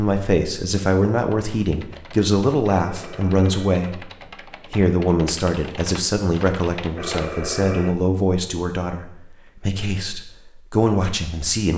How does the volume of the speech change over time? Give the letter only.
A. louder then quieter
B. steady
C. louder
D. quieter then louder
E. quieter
B.